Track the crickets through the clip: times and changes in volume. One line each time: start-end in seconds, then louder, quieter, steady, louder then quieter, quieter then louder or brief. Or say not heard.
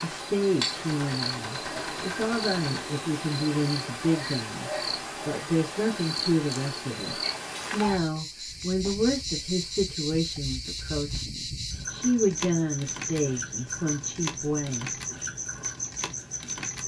0.0-16.8 steady.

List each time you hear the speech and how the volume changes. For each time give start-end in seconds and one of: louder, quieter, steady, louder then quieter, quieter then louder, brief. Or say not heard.
0.0-14.9 steady.